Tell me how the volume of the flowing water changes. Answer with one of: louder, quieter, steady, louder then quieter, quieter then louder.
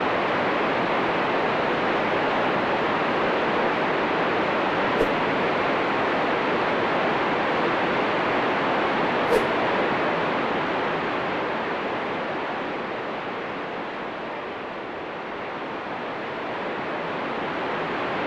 quieter.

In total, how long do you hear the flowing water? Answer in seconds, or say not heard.
18 s.